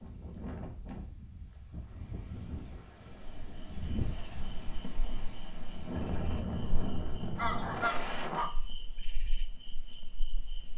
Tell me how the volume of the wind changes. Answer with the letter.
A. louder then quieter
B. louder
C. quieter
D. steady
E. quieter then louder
B.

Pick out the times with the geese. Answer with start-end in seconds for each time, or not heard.
7.3-8.5.